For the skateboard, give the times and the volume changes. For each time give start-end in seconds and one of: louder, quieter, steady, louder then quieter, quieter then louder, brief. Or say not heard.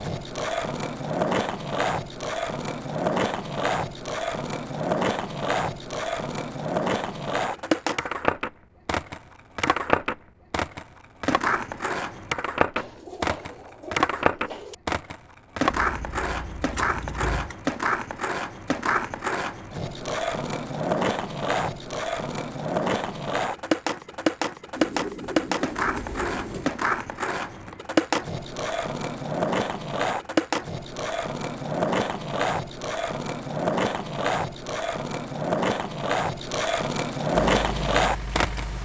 0.0-38.8 steady.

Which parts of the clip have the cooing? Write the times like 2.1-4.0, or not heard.
12.8-14.8, 24.8-26.8.